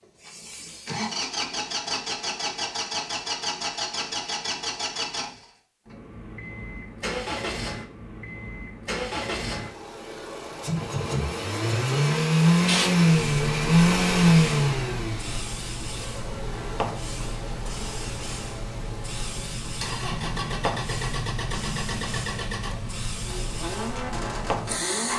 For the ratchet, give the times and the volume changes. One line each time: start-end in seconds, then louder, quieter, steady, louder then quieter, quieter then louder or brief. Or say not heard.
not heard.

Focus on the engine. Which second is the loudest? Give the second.
14 s.